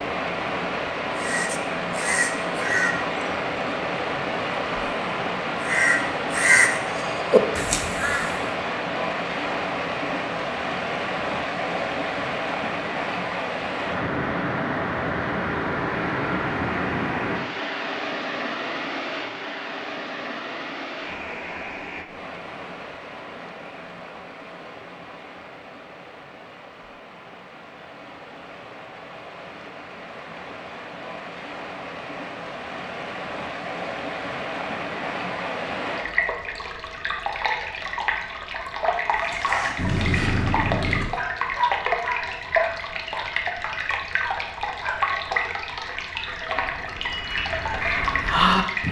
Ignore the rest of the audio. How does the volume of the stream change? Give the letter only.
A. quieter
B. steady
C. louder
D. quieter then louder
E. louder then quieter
D.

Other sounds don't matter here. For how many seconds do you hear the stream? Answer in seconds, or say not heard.
49 s.